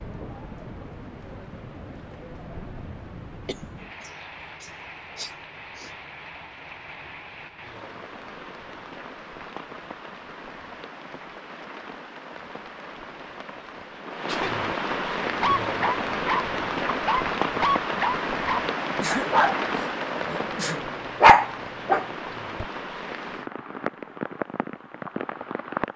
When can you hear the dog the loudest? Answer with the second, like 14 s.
21 s.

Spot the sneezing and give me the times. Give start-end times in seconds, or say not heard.
3.5-5.9, 14.2-14.7, 19.0-20.8.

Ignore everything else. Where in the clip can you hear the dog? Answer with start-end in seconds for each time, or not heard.
15.4-22.6.